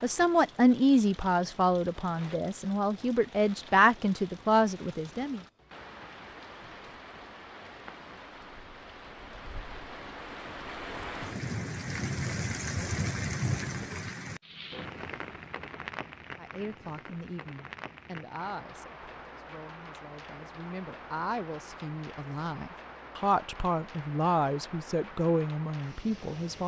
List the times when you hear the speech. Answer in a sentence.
The speech can be heard from 0.0 to 5.4 s and from 16.4 to 26.6 s.